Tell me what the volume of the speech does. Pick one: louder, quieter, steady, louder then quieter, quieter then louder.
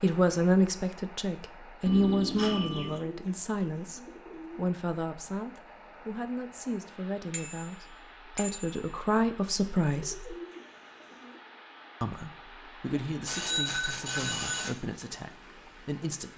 quieter.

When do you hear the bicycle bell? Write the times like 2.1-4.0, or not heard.
1.9-3.0, 7.3-9.0, 13.1-14.7.